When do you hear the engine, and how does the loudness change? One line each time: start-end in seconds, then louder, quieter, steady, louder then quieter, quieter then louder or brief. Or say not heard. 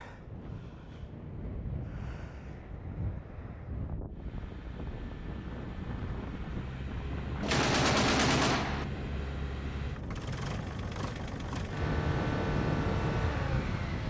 4.1-14.0 louder.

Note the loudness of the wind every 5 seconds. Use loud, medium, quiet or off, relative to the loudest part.
medium, medium, loud.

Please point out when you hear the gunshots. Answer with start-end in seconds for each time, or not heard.
7.4-8.8.